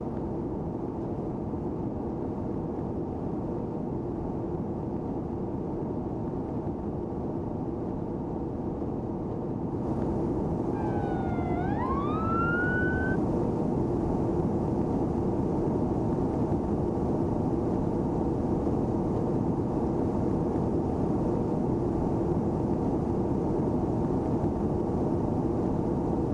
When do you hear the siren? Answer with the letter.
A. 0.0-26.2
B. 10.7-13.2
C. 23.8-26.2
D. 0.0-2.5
B.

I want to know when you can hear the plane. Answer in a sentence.
The plane can be heard from 0.0 to 26.2 s.